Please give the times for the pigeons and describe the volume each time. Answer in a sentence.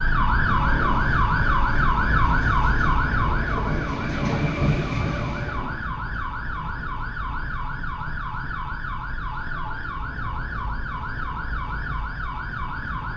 You can't hear the pigeons here.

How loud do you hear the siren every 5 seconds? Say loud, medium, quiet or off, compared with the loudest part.
loud, medium, medium.